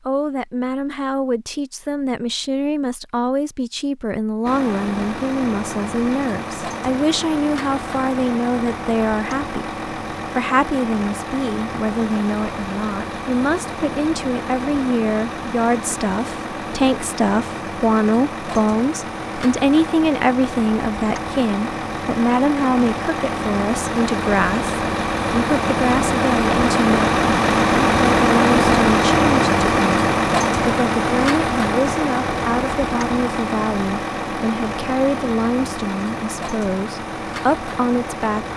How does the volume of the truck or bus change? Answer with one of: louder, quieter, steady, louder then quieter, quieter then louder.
louder then quieter.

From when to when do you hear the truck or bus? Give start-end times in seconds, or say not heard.
4.5-38.5.